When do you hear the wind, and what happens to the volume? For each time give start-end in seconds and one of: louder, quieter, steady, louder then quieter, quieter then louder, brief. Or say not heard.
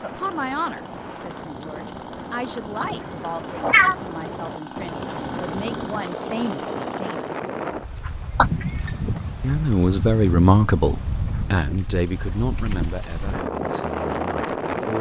0.0-14.9 louder.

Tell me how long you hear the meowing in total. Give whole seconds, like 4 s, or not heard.
2 s.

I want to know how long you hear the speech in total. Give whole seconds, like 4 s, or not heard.
13 s.